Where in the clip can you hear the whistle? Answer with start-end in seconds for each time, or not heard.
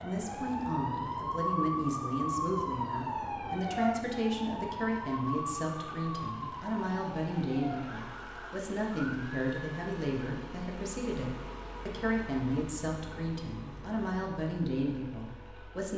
not heard.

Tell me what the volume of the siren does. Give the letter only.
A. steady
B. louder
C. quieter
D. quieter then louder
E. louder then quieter
C.